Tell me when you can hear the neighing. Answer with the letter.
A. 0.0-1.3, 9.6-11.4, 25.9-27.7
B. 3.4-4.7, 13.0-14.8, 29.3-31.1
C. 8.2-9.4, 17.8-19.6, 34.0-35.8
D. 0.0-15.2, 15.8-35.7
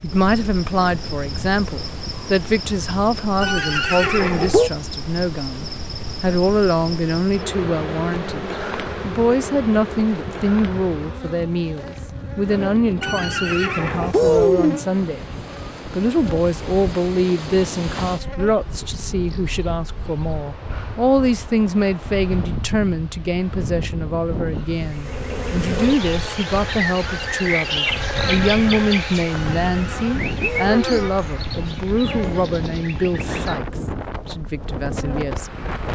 B.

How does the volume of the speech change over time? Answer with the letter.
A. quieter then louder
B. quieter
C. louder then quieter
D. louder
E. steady
E.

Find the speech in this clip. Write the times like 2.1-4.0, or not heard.
0.0-15.2, 15.8-35.7.